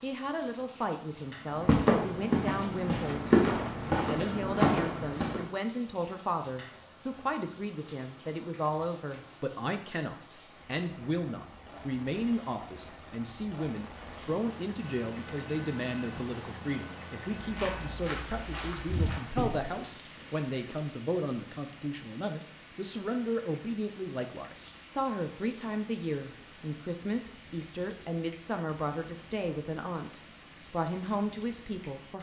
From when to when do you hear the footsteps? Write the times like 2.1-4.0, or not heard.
1.5-5.5, 17.4-19.7.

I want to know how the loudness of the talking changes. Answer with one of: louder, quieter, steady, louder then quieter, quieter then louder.
steady.